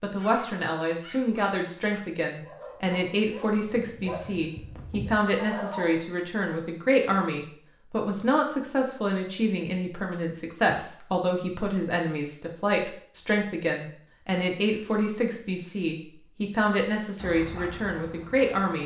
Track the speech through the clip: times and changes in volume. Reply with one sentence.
The speech can be heard from 0.0 to 18.8 s, at a steady volume.